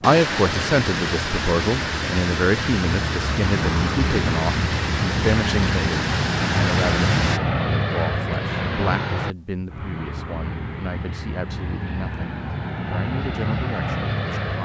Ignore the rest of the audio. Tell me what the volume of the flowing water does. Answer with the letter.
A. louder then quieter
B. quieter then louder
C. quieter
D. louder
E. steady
E.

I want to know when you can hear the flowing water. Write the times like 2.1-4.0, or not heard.
0.0-7.4.